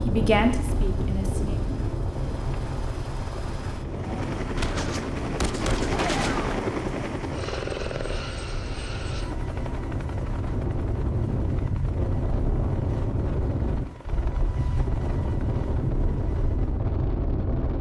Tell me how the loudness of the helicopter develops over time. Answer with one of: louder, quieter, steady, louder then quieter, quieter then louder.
louder then quieter.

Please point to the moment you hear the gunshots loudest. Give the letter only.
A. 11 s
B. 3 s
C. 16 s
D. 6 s
D.